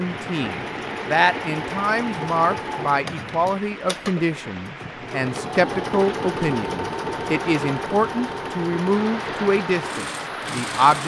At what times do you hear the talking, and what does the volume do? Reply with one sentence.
The talking can be heard from 0.0 to 11.0 s, at a steady volume.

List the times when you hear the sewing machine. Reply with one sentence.
The sewing machine can be heard from 0.0 to 11.0 s.